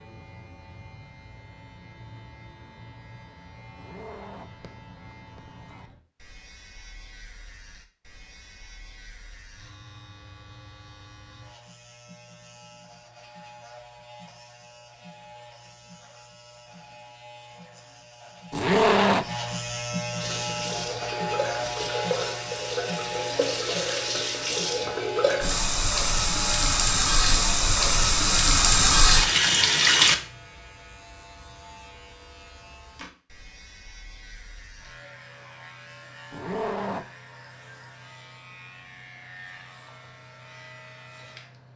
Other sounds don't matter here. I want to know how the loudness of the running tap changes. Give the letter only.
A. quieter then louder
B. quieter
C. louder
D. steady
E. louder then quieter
C.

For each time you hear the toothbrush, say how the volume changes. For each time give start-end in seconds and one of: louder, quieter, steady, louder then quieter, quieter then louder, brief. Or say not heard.
not heard.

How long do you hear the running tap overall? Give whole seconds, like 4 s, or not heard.
10 s.